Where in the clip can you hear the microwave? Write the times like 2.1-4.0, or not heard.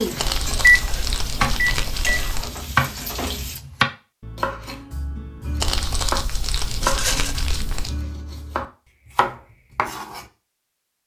0.6-2.4.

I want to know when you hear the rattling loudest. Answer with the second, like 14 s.
7 s.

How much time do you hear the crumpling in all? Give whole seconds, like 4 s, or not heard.
5 s.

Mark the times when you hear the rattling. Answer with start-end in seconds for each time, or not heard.
0.8-1.2, 6.8-7.5.